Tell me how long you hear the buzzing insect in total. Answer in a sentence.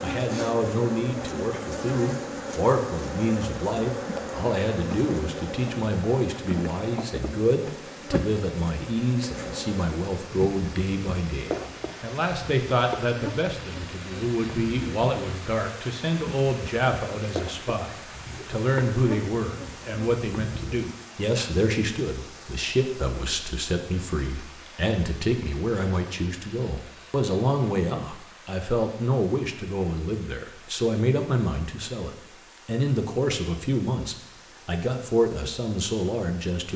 The buzzing insect can be heard for 21 seconds in total.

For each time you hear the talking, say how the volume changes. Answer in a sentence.
You can hear the talking from 0.0 to 36.7 s, at a steady volume.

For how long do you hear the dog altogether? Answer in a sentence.
The dog can't be heard in this clip.